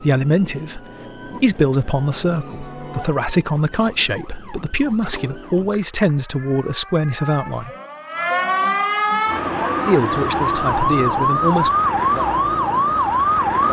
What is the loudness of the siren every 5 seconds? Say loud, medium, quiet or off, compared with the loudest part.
quiet, medium, loud.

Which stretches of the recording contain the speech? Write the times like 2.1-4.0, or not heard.
0.0-7.7, 9.8-11.8.